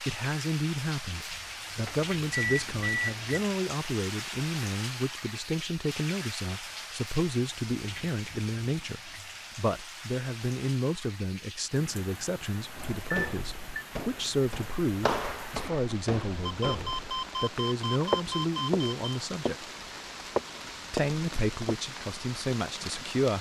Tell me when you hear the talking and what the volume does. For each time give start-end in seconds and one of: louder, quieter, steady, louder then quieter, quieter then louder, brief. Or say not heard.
0.0-19.7 steady
20.9-23.3 brief.